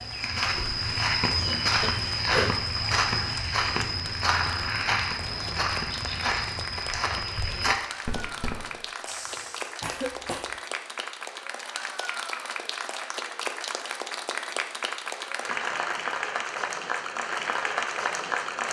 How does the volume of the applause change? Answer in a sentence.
The loudness of the applause goes up.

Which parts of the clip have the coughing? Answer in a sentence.
You can hear the coughing from 1.8 to 2.5 s and from 9.8 to 10.6 s.